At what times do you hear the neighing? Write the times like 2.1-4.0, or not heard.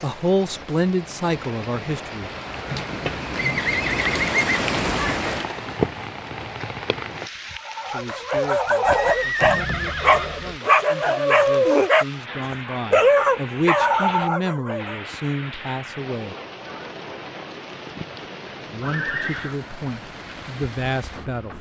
3.4-4.7, 8.8-10.6, 18.8-19.6.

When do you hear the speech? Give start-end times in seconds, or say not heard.
0.0-2.3, 7.8-16.4, 18.7-21.5.